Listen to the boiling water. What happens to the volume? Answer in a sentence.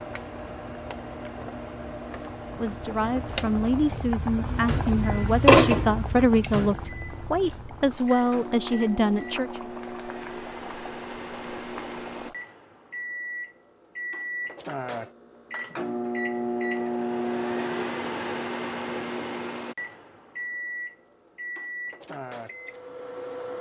The volume of the boiling water goes up, then down.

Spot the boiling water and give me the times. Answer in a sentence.
You can hear the boiling water from 0.0 to 12.3 s.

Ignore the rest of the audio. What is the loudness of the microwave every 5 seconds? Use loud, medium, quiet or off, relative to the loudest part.
medium, medium, medium, loud, medium.